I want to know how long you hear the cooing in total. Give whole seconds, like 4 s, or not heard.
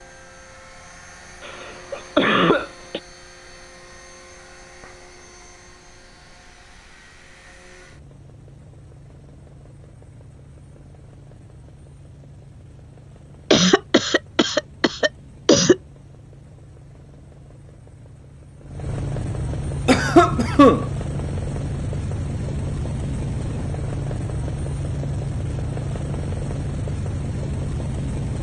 not heard.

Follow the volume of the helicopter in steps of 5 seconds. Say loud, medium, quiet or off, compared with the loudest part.
quiet, quiet, quiet, medium, loud, loud.